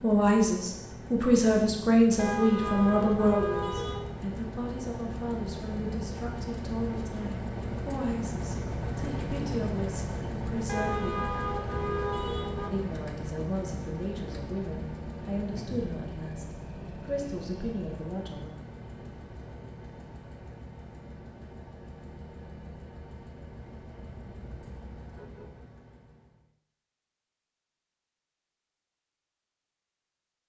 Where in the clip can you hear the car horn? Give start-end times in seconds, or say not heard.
2.1-4.0, 10.7-12.7, 24.1-25.6.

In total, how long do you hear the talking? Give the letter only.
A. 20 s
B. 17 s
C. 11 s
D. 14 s
B.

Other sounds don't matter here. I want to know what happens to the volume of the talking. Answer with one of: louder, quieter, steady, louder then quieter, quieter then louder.
quieter.